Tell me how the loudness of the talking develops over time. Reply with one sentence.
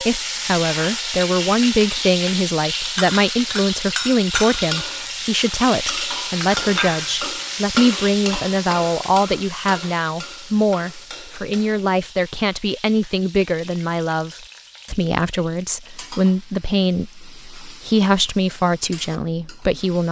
The loudness of the talking stays about the same.